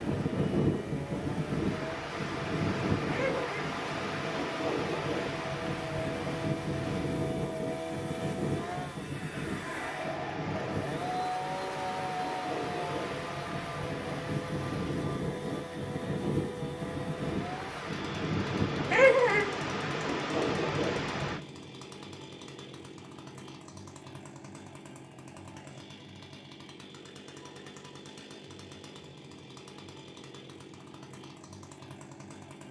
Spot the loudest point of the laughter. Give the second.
19 s.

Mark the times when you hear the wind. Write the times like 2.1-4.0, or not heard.
0.0-21.4.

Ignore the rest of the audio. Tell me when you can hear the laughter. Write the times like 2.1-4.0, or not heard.
3.1-3.7, 18.9-19.4.